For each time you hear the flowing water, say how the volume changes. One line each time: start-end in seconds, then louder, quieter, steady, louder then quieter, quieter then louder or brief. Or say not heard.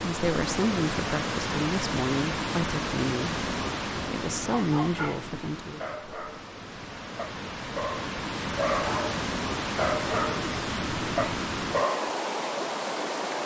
0.0-13.4 quieter then louder.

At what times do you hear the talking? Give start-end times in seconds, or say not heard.
0.0-5.8.